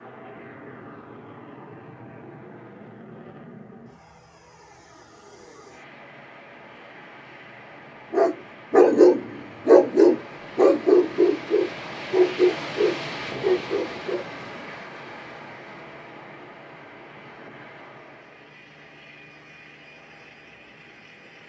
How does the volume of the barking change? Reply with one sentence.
The volume of the barking goes down.